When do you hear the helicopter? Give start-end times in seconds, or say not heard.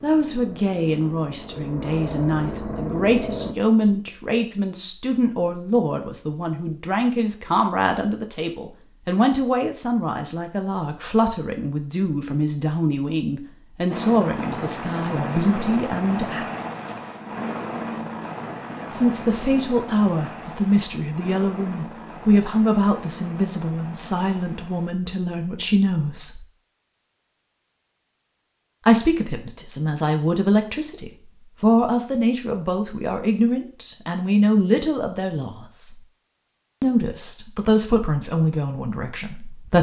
0.0-3.5, 13.9-24.9.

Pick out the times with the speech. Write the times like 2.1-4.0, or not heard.
0.0-16.4, 18.9-26.4, 28.9-36.0, 36.8-39.7.